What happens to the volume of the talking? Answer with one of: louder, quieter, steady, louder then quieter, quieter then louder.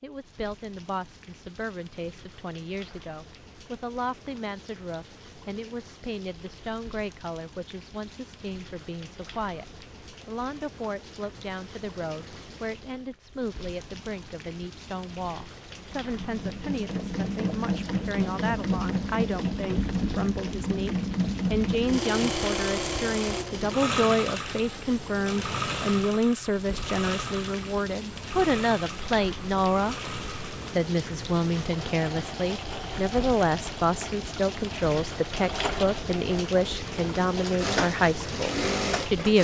louder.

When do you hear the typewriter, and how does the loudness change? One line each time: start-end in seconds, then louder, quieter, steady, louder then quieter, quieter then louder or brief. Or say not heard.
not heard.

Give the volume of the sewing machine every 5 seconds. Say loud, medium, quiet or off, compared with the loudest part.
off, off, off, loud, loud, medium, medium, loud.